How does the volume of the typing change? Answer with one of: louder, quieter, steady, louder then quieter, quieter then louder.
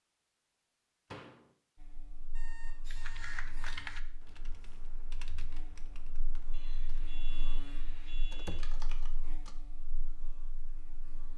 quieter then louder.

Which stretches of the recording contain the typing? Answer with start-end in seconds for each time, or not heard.
2.9-9.6.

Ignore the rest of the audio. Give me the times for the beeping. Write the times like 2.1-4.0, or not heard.
2.0-3.8, 6.5-8.8.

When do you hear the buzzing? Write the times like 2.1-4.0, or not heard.
1.8-11.3.